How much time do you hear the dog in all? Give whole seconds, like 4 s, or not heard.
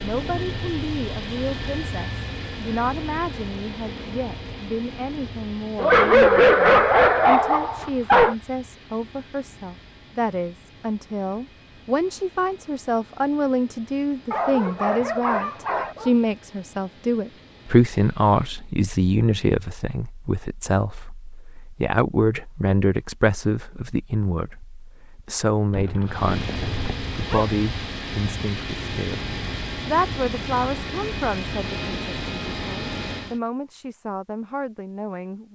6 s.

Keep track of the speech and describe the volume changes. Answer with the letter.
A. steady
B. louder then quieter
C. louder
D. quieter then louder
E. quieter
B.